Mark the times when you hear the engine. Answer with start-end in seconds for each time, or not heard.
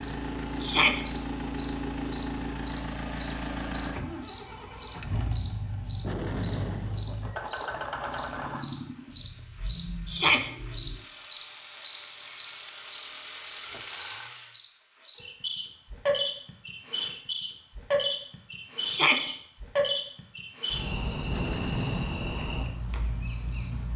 0.0-14.6.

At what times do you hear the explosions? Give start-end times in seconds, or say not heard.
6.0-7.2, 21.3-22.1.